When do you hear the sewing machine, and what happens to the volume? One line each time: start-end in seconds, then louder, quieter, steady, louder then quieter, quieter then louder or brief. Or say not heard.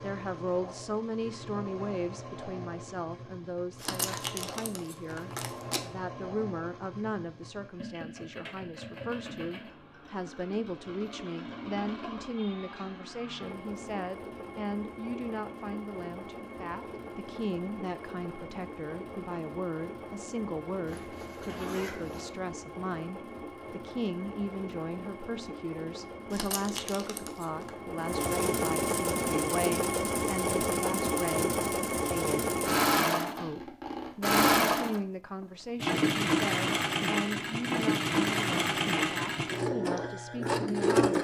0.0-41.1 louder.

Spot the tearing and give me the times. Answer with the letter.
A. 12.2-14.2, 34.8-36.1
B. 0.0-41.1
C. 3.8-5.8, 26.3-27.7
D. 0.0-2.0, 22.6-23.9
C.